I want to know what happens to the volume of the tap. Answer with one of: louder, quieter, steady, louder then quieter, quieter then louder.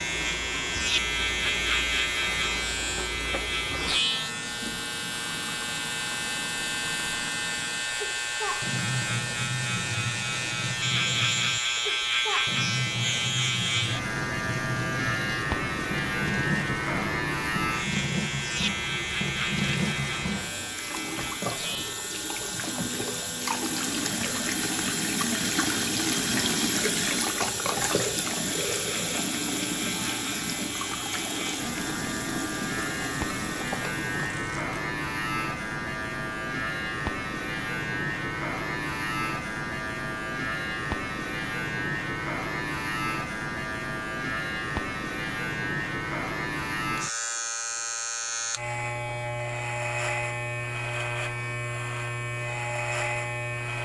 louder.